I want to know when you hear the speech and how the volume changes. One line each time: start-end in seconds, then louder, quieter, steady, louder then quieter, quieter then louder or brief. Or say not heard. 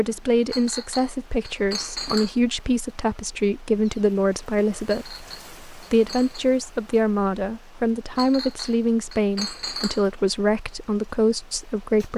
0.0-12.1 steady.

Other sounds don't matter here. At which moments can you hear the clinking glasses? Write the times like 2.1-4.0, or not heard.
0.5-2.4, 4.8-6.5, 8.2-10.1.